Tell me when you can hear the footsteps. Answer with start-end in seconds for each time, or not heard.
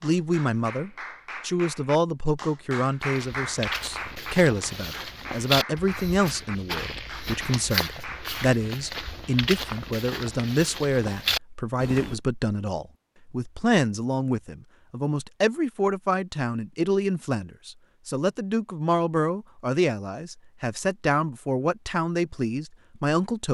3.0-12.2.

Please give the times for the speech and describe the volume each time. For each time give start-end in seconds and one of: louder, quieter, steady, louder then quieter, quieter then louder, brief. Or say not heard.
0.0-23.5 steady.